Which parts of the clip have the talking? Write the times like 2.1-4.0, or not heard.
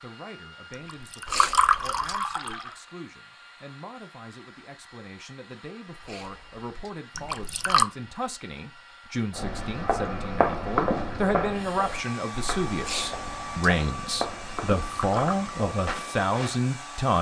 0.0-17.1.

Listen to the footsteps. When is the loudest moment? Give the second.
11 s.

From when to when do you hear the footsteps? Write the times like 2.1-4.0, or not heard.
9.3-16.6.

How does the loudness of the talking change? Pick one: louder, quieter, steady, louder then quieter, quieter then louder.
louder.